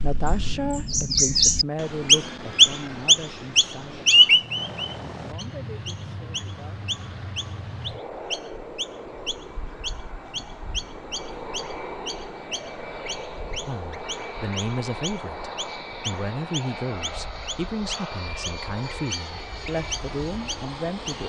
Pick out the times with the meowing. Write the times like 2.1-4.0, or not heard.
not heard.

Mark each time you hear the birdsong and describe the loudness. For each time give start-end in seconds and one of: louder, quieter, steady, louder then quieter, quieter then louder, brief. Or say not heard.
0.0-21.2 quieter.